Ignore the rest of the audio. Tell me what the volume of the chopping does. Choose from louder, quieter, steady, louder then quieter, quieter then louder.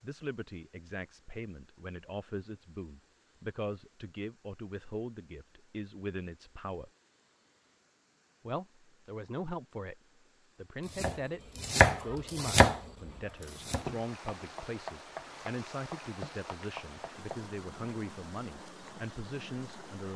quieter.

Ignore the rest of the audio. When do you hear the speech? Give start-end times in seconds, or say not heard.
0.0-6.9, 8.4-20.1.